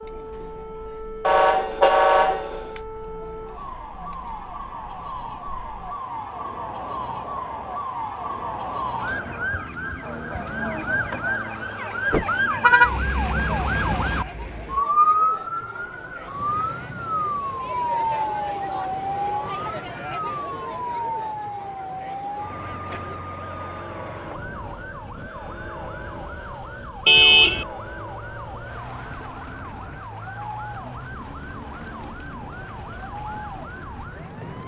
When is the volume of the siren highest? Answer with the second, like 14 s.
15 s.